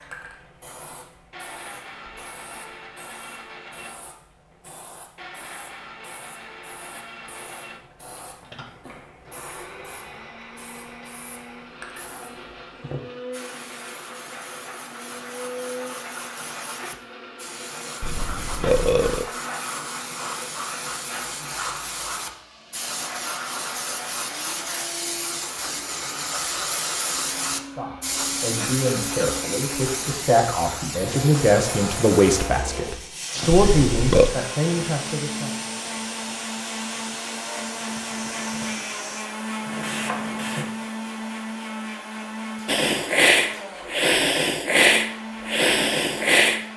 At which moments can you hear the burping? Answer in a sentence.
You can hear the burping from 18.0 to 19.2 s and from 33.5 to 34.4 s.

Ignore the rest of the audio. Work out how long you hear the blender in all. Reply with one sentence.
The blender can be heard for 47 seconds in total.